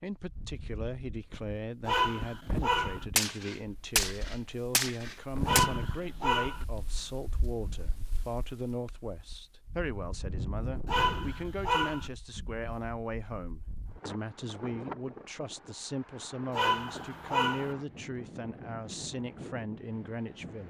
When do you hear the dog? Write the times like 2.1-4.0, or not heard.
1.9-3.0, 5.5-6.7, 10.8-12.1, 16.5-17.8.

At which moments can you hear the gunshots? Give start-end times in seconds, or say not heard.
3.1-5.7.